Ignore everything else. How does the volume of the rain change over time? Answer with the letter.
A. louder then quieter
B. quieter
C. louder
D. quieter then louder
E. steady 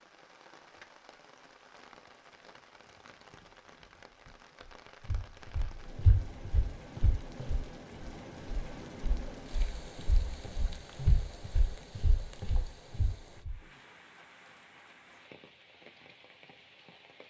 A.